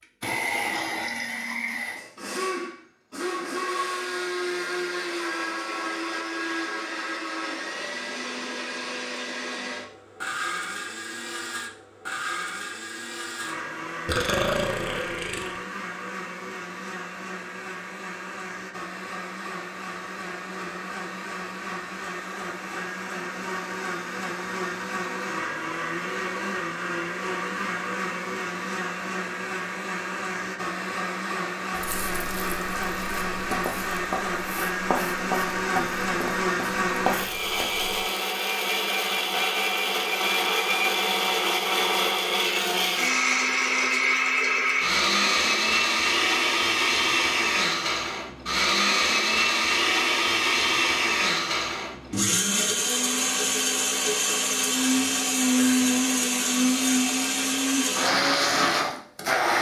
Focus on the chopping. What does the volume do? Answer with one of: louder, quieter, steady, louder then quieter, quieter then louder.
louder.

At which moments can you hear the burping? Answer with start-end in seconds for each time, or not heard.
14.1-15.6.